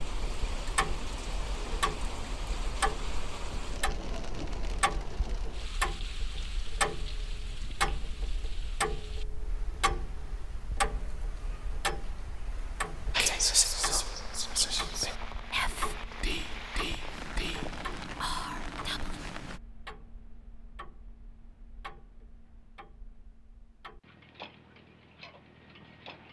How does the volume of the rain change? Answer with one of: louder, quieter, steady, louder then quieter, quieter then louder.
quieter then louder.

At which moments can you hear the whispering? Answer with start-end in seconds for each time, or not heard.
13.1-19.2.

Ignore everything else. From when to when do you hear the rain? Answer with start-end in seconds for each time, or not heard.
0.0-19.6.